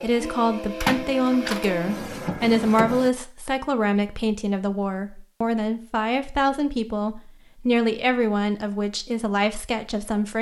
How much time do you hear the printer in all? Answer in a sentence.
You can hear the printer for 3 seconds altogether.